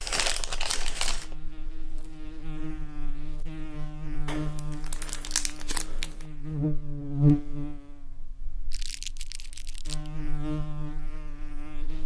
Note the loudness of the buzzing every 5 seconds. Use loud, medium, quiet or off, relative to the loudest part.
medium, loud, medium.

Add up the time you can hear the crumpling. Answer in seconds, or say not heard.
5 s.